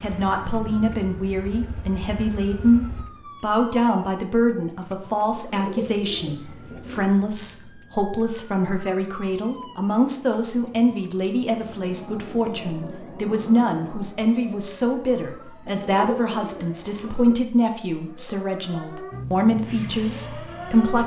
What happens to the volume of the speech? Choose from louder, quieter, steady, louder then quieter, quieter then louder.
steady.